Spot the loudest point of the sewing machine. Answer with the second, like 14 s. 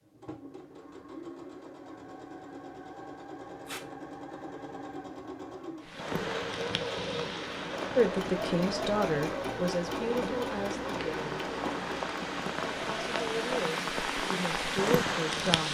9 s.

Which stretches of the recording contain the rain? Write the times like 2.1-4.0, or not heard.
5.8-15.6.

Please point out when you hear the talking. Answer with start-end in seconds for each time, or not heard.
8.0-11.4, 12.7-15.6.